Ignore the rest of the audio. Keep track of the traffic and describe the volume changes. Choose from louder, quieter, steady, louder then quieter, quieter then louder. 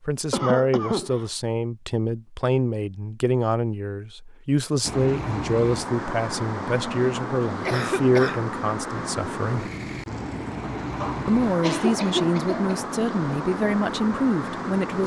steady.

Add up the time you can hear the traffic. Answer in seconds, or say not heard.
10 s.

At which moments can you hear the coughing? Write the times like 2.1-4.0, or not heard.
0.3-1.3, 7.6-8.4, 11.0-12.8.